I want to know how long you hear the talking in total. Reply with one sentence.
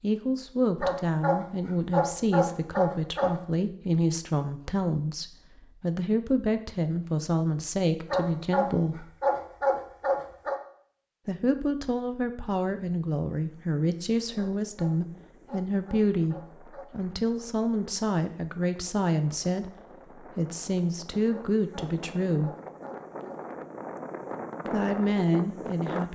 The talking can be heard for 22 seconds in total.